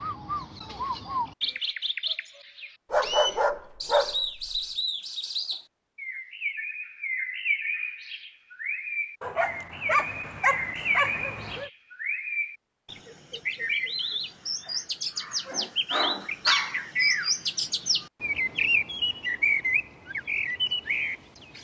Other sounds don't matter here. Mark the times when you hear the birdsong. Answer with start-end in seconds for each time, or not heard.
0.0-21.6.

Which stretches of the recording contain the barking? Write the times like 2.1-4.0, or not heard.
2.9-4.6, 9.2-11.7, 15.4-16.8.